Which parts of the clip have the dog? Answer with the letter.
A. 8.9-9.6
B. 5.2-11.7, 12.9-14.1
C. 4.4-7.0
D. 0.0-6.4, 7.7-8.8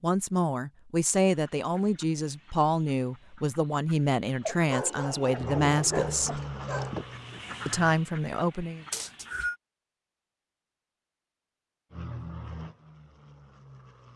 C.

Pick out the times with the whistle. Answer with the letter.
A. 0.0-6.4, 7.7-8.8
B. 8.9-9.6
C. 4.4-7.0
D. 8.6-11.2
B.